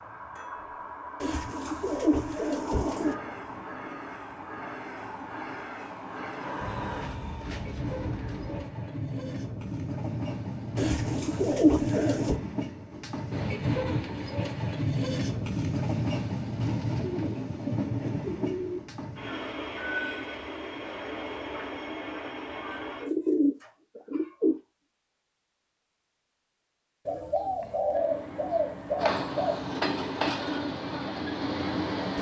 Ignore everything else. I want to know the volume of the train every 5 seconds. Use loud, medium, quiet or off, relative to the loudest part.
medium, medium, loud, loud, medium, loud, loud.